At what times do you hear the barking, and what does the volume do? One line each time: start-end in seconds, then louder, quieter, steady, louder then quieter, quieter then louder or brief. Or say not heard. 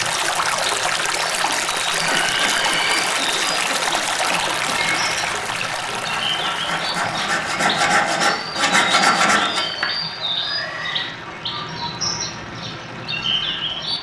not heard.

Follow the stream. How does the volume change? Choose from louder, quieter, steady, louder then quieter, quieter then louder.
quieter.